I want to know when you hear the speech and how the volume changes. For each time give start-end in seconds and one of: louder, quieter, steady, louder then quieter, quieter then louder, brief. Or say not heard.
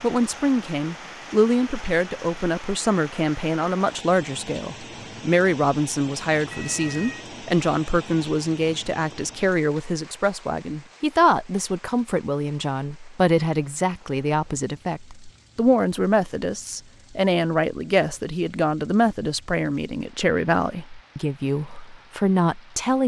0.0-23.0 steady.